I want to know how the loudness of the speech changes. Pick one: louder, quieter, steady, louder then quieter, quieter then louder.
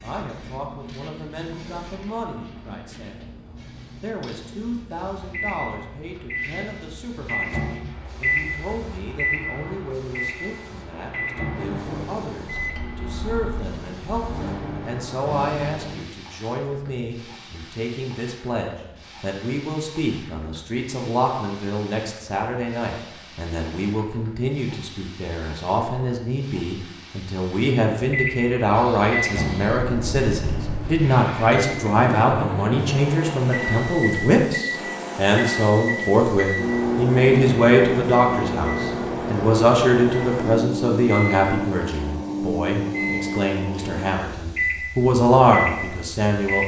louder.